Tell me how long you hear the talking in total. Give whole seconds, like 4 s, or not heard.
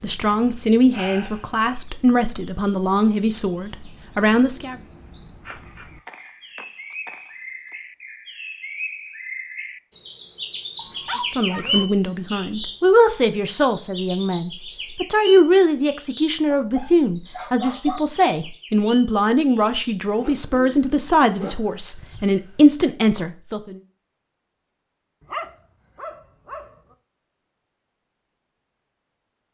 17 s.